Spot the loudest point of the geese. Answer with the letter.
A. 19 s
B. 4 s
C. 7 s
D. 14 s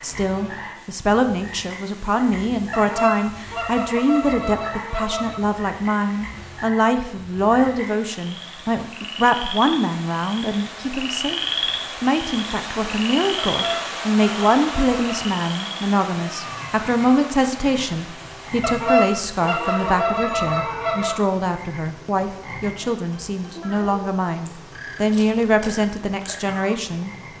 A.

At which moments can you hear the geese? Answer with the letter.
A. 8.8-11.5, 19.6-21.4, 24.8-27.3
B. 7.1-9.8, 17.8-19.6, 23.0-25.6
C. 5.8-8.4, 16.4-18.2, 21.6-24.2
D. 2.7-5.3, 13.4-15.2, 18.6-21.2
D.